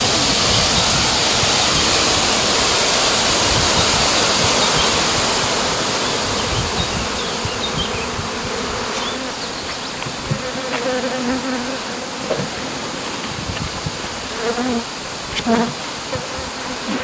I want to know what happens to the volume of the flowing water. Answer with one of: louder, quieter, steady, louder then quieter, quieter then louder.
quieter.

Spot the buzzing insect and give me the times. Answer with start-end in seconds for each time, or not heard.
0.0-16.9.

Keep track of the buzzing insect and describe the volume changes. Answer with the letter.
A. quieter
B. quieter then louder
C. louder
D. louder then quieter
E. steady
E.